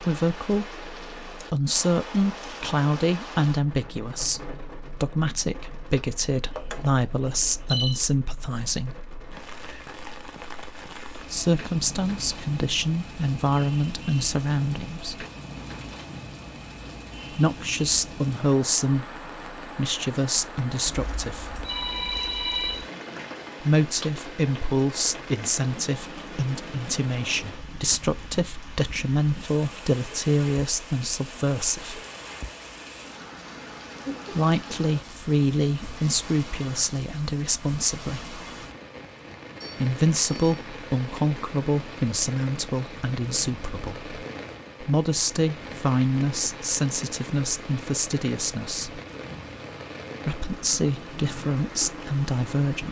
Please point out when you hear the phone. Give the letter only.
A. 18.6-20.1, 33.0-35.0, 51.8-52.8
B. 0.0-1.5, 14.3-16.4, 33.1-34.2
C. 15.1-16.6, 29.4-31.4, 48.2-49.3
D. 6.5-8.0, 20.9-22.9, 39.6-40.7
D.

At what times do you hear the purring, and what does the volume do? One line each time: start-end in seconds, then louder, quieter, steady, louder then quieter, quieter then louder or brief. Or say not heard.
not heard.